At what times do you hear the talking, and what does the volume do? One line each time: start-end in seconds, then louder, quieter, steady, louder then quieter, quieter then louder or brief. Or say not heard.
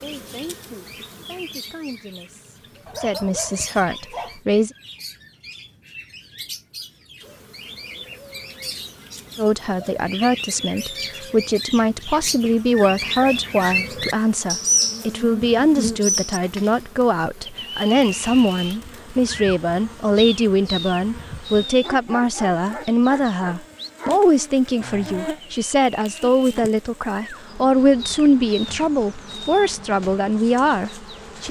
0.0-4.7 quieter then louder
9.3-31.4 steady.